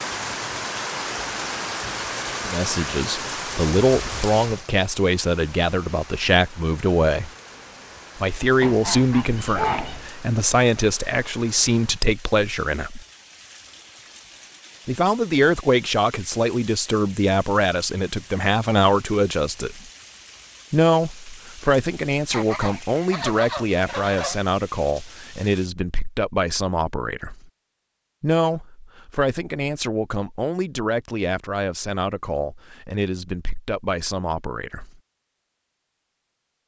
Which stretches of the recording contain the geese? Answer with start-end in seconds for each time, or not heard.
8.6-10.1, 22.3-24.4.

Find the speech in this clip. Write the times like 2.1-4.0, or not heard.
2.5-7.3, 8.2-13.0, 14.8-19.8, 20.7-27.4, 28.2-35.0.